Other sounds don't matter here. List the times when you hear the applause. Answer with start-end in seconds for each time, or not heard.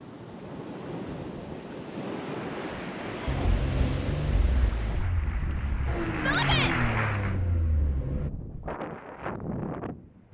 4.4-7.4.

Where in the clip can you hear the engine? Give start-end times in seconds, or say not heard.
3.2-8.3.